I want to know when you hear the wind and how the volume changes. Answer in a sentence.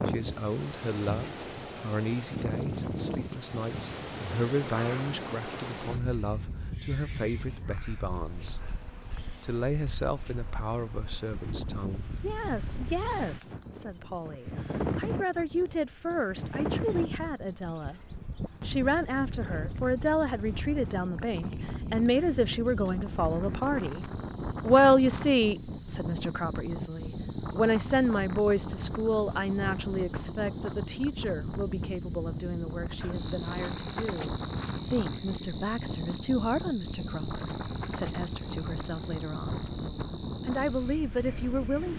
You can hear the wind from 0.0 to 41.9 s, at a steady volume.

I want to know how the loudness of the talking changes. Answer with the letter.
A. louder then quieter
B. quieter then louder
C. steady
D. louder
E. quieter
A.